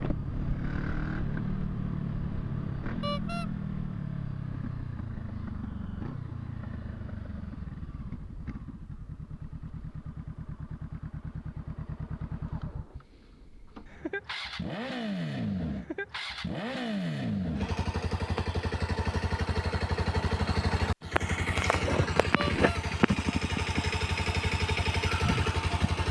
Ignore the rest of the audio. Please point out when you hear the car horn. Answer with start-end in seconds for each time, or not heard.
3.0-3.5, 22.4-22.8.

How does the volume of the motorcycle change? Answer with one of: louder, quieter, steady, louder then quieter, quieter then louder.
quieter then louder.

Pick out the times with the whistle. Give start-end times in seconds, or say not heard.
not heard.